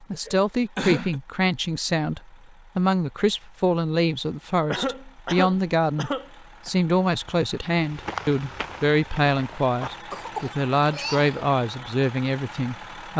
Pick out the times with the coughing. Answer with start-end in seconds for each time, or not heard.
0.1-1.2, 4.7-6.7, 10.1-11.4.